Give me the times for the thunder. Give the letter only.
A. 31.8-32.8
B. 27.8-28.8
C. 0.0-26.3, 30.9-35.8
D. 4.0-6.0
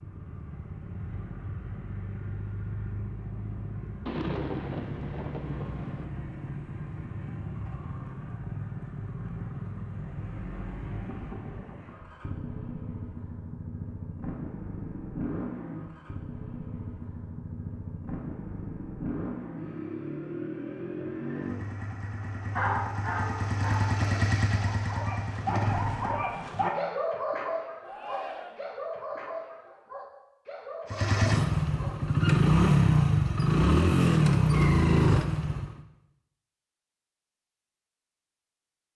D.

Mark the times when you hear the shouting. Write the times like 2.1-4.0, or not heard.
27.8-28.8.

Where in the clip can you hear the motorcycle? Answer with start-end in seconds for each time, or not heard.
0.0-26.3, 30.9-35.8.